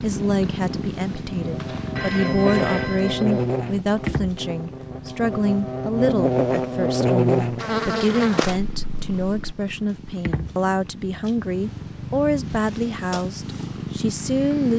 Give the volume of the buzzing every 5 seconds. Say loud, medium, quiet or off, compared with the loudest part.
medium, loud, off.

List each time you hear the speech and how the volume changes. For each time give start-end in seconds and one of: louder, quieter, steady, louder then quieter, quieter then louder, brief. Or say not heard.
0.0-14.7 steady.